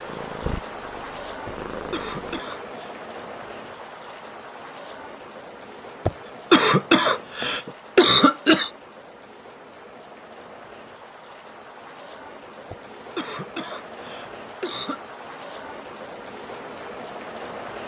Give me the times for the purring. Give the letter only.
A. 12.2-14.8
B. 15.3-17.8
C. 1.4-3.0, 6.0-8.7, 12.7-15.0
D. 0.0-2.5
D.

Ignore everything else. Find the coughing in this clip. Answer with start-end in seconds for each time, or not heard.
1.4-3.0, 6.0-8.7, 12.7-15.0.